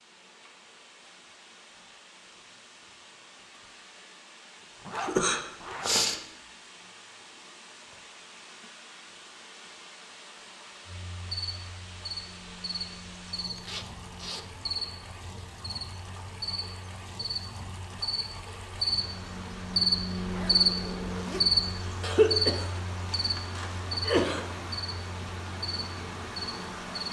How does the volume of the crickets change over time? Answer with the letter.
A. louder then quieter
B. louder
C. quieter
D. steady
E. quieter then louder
A.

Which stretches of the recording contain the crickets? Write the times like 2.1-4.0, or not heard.
10.8-27.0.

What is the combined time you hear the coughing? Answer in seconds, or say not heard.
4 s.